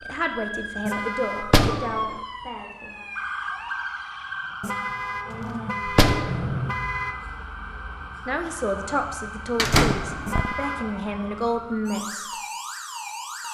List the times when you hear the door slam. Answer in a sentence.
The door slam can be heard from 1.4 to 2.1 s, from 5.8 to 6.6 s and from 9.6 to 10.6 s.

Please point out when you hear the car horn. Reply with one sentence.
You can hear the car horn from 0.8 to 1.6 s, from 4.6 to 7.2 s and from 10.2 to 10.8 s.